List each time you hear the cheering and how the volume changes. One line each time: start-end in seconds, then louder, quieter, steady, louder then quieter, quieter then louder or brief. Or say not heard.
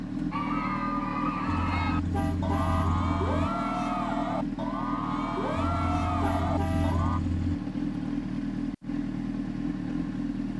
0.3-7.2 steady.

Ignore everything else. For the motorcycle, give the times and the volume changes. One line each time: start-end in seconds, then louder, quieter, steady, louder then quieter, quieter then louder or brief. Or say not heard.
0.0-10.5 steady.